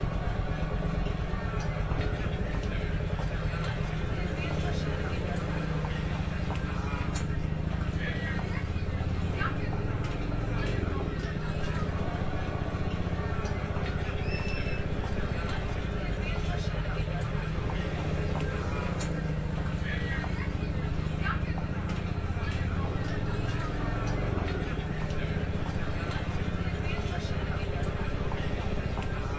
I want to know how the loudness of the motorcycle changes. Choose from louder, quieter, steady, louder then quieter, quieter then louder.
steady.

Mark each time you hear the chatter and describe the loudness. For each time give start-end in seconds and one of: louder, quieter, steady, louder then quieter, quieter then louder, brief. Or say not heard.
0.0-29.3 steady.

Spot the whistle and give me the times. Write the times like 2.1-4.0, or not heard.
14.1-14.8.